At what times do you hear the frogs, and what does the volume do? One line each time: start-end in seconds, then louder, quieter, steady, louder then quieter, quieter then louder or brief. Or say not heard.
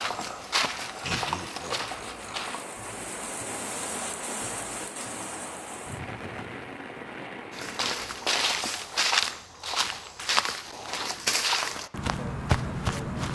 not heard.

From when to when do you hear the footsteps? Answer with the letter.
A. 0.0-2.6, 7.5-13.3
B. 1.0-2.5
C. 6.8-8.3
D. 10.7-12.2
A.